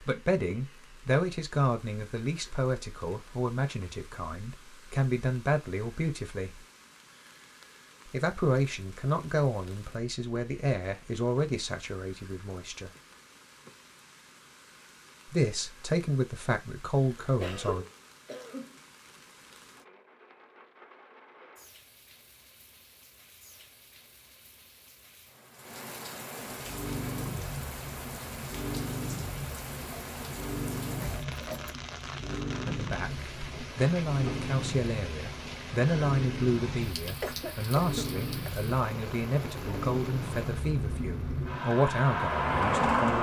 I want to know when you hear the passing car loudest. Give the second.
43 s.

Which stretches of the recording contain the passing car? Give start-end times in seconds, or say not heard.
26.5-43.1.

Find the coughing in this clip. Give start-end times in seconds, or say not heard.
17.4-18.8, 37.2-38.7.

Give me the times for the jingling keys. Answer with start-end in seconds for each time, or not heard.
31.0-31.8.